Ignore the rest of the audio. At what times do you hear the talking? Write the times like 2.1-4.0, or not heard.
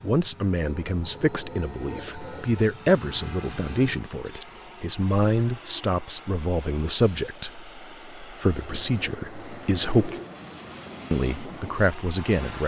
0.0-10.1, 11.1-12.6.